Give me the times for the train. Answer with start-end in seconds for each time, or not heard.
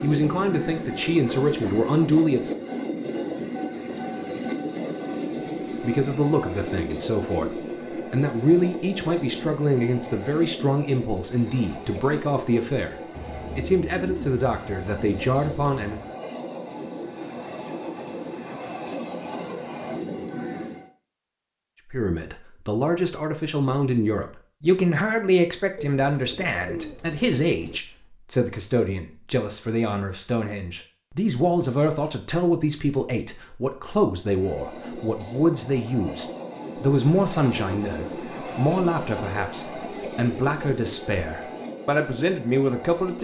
0.0-20.9, 34.2-43.1.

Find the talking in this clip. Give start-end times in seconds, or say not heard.
0.0-2.5, 5.8-16.0, 21.9-43.1.